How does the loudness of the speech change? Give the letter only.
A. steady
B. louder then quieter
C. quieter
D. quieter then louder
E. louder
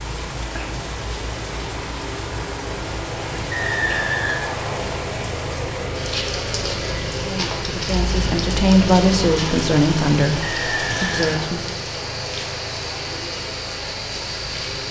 B.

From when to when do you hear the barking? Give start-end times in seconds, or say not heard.
not heard.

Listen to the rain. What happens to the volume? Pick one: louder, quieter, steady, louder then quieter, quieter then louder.
steady.